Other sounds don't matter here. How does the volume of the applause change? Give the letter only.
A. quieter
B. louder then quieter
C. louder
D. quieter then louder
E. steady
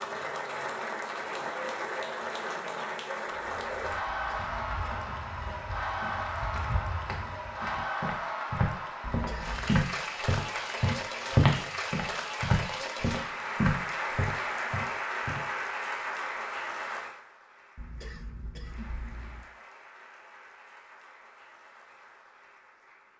A.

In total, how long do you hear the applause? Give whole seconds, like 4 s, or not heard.
23 s.